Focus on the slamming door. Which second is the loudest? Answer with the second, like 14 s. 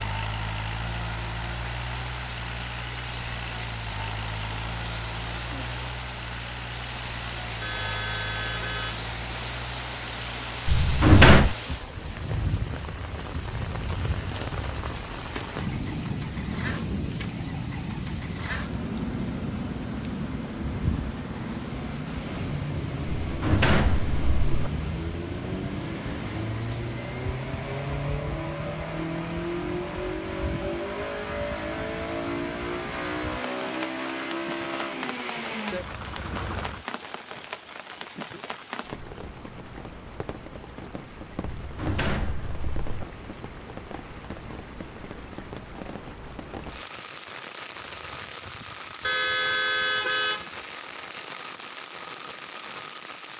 11 s.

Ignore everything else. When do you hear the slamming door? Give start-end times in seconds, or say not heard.
10.7-11.6, 23.2-24.6, 41.4-43.0.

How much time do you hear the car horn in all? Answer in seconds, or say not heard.
3 s.